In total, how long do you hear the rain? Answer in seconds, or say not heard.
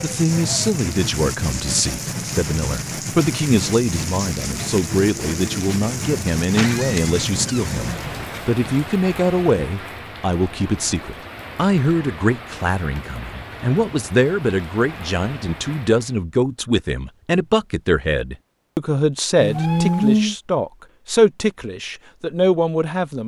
16 s.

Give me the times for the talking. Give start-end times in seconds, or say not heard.
0.0-23.2.